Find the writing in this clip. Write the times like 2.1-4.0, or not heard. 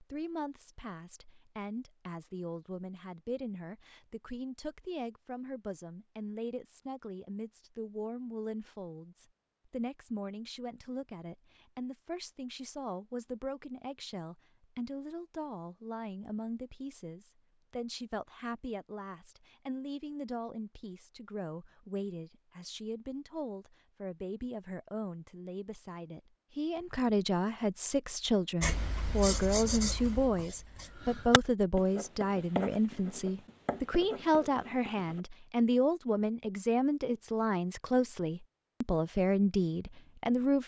28.6-35.2.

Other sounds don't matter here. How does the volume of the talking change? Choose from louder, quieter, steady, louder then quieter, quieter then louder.
louder.